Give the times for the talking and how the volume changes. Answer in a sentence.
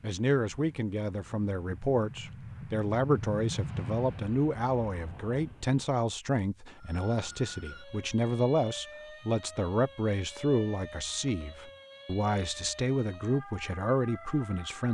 You can hear the talking from 0.0 to 14.8 s, at a steady volume.